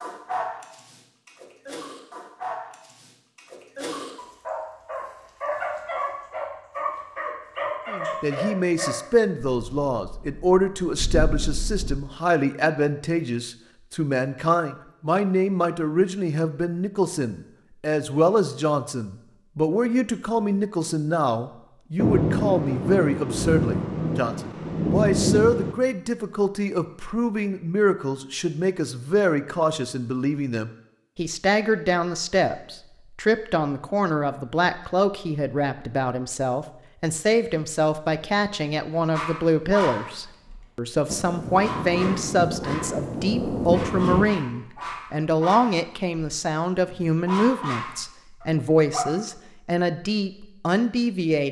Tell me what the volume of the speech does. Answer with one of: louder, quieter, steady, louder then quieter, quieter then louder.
steady.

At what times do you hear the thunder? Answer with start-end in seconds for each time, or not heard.
9.7-12.0, 21.9-25.8, 41.0-44.3.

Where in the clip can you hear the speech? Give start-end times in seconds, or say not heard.
7.8-51.4.